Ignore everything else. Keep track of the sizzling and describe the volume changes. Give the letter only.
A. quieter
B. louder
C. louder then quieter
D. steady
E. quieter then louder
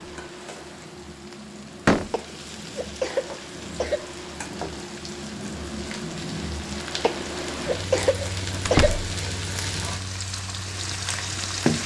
B.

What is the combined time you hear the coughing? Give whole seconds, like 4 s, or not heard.
4 s.